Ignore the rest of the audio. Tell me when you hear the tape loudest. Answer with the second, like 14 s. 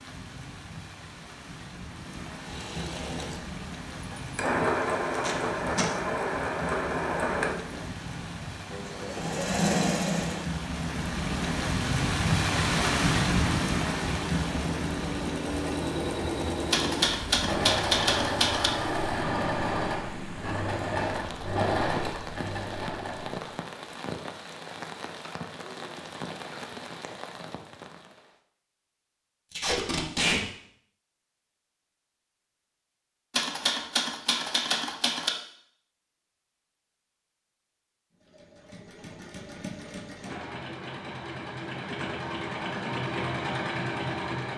30 s.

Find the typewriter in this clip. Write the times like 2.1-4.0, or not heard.
16.7-18.7, 33.3-35.3.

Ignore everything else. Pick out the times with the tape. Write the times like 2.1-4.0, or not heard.
5.2-5.8, 29.5-30.4.